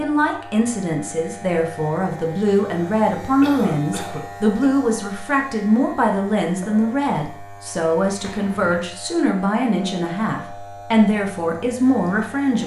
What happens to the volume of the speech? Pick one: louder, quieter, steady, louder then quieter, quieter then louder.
steady.